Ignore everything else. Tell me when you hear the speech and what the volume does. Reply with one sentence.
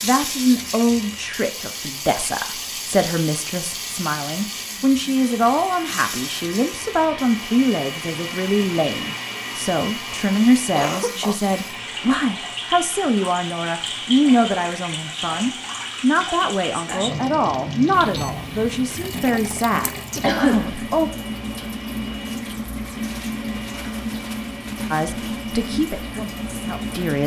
You can hear the speech from 0.0 to 21.1 s, at a steady volume; and briefly from 24.9 to 27.2 s.